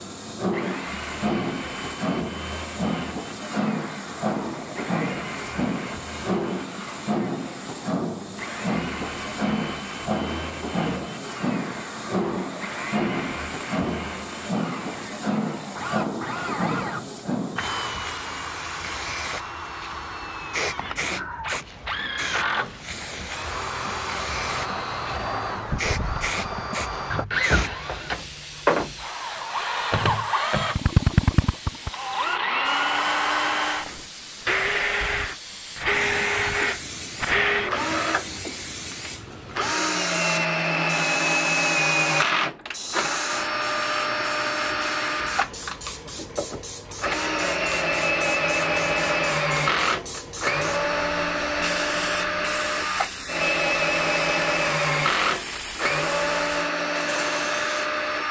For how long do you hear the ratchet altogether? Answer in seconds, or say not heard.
not heard.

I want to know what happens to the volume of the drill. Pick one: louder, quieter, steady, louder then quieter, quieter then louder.
louder.